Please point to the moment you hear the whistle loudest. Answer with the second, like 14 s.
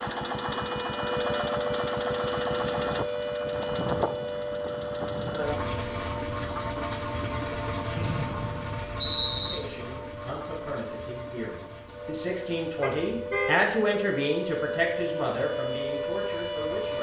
9 s.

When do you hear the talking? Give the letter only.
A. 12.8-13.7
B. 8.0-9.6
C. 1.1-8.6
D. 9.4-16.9
D.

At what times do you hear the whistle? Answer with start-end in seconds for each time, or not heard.
8.0-9.6.